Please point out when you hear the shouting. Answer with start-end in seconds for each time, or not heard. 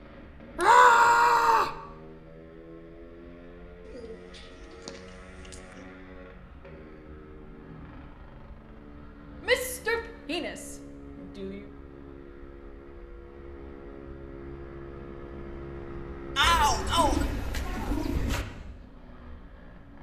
0.6-1.8, 9.4-11.6, 16.4-17.2.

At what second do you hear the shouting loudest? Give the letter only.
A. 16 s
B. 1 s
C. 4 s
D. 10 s
B.